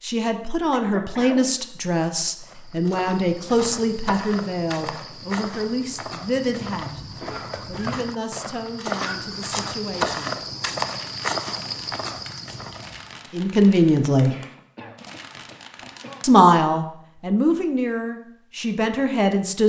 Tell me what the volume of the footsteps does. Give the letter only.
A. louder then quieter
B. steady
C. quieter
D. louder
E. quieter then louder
D.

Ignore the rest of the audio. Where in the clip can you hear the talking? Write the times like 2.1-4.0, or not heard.
0.0-7.0, 7.7-10.4, 13.3-14.3, 16.2-19.6.